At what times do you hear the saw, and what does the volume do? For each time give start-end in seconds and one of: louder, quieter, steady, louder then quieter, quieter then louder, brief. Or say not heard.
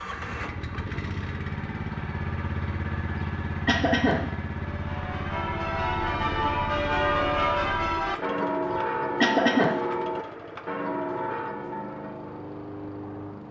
not heard.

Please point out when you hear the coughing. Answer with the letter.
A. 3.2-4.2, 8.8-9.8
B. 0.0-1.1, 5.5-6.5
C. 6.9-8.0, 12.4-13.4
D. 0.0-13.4
A.